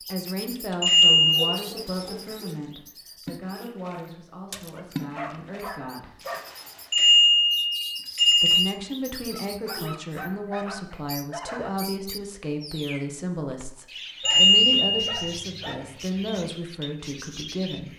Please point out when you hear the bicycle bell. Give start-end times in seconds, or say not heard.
0.8-1.5, 6.9-8.7, 14.2-15.1.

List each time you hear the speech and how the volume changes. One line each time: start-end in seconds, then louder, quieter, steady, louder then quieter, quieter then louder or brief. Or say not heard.
0.0-6.2 quieter
8.4-17.9 steady.